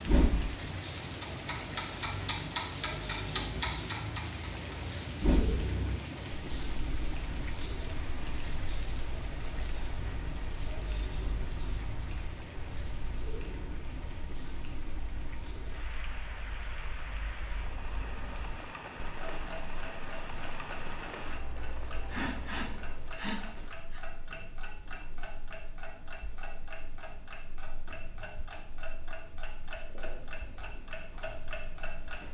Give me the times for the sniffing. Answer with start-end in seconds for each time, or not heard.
21.8-24.0.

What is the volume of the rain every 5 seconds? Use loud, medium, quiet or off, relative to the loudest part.
loud, loud, medium, medium, medium, off, off.